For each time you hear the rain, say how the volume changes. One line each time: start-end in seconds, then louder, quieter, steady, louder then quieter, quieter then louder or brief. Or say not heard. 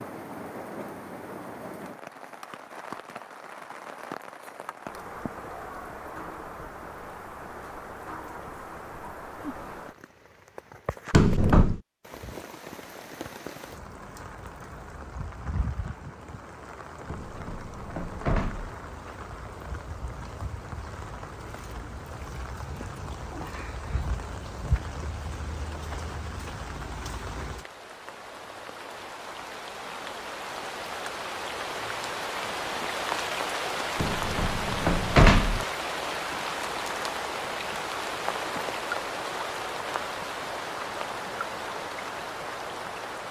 0.0-43.2 louder.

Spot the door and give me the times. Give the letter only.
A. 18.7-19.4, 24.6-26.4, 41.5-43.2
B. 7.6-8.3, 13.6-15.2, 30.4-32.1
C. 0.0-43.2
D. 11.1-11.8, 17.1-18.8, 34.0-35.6
D.